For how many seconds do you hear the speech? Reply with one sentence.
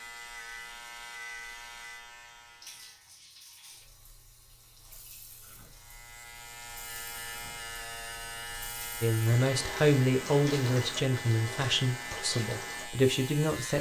You can hear the speech for 5 seconds altogether.